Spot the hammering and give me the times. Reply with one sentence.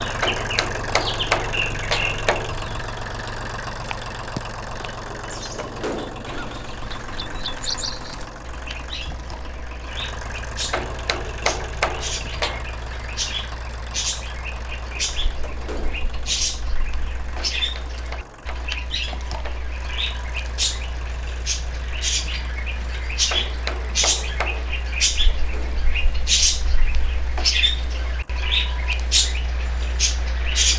The hammering can be heard from 0.2 to 2.5 s, from 10.7 to 12.7 s, from 17.6 to 19.7 s and from 23.3 to 24.8 s.